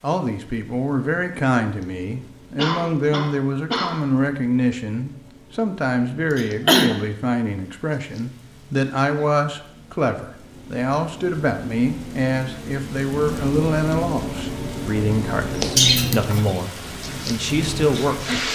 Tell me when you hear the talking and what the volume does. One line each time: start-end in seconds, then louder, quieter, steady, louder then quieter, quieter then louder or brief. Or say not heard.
0.0-18.4 steady.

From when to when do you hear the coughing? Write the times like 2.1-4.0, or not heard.
2.5-4.0, 6.3-7.0, 15.8-16.6.